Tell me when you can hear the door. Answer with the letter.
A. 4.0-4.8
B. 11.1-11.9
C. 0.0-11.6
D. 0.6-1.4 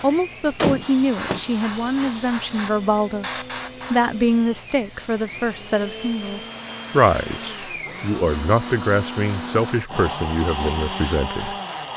D.